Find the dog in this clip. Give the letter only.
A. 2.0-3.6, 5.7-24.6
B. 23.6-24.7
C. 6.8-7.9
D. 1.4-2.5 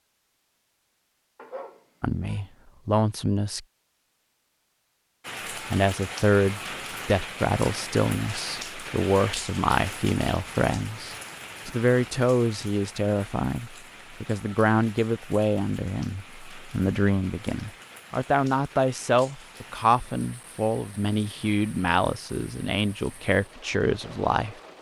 D.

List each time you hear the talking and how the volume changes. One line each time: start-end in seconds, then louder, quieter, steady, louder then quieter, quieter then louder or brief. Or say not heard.
2.0-3.6 brief
5.7-24.6 steady.